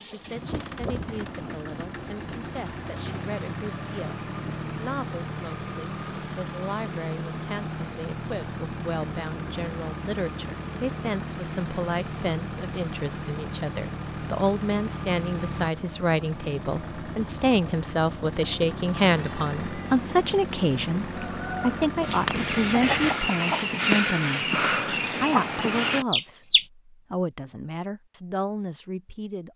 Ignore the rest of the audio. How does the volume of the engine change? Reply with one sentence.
The volume of the engine stays about the same.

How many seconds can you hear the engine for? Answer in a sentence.
You can hear the engine for 23 seconds altogether.